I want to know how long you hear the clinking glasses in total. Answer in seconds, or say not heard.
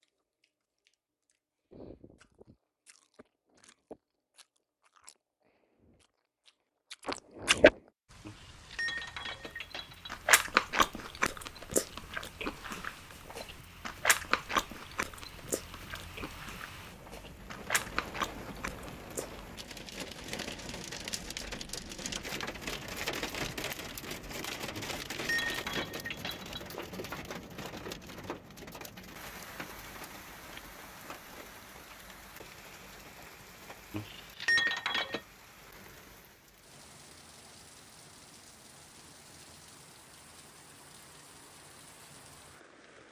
5 s.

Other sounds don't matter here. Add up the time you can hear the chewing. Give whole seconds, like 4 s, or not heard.
16 s.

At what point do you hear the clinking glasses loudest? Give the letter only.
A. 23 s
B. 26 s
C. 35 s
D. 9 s
C.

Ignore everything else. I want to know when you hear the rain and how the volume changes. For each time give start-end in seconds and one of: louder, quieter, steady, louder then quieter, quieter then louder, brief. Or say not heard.
8.1-43.0 louder then quieter.